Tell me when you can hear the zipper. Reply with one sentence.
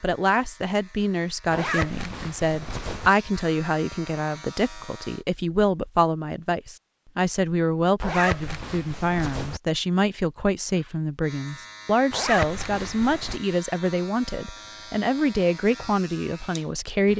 You can hear the zipper from 1.5 to 3.1 s, from 8.0 to 9.6 s and from 12.1 to 13.4 s.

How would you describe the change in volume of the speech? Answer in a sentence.
The volume of the speech stays about the same.